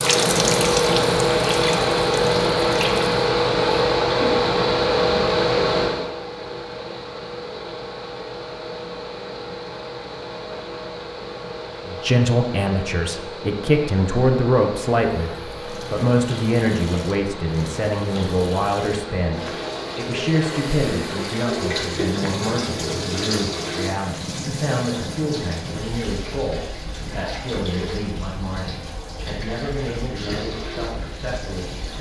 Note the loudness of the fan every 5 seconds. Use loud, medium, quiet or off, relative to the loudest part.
loud, medium, quiet, quiet, quiet, quiet, quiet.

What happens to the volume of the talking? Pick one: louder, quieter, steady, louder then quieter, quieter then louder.
quieter.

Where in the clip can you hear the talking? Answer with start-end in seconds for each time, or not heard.
11.8-31.9.